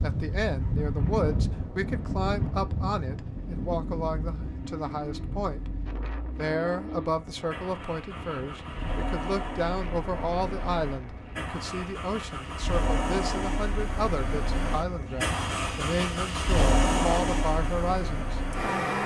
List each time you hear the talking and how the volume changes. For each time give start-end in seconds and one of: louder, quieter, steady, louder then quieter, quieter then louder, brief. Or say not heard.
0.0-19.0 steady.